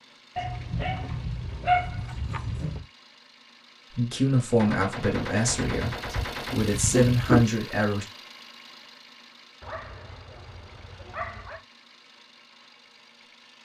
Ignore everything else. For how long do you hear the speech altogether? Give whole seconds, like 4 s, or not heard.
4 s.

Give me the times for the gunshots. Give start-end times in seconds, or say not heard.
4.5-6.6.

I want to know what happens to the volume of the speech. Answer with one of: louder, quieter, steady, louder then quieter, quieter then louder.
quieter then louder.